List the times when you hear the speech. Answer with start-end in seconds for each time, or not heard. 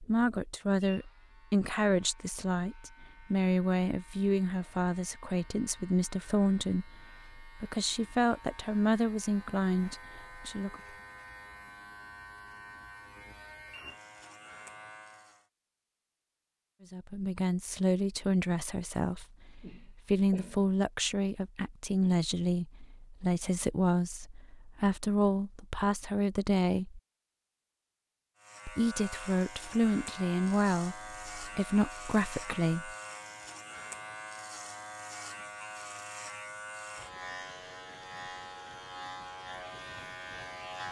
0.0-10.8, 16.9-27.0, 28.6-33.0.